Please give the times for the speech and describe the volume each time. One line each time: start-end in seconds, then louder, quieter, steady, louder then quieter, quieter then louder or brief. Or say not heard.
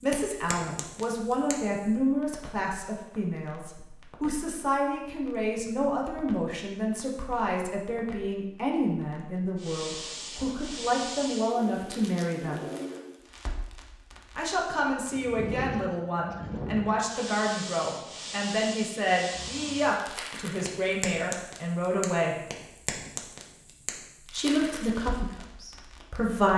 0.0-12.7 steady
14.3-22.4 steady
24.2-26.5 brief.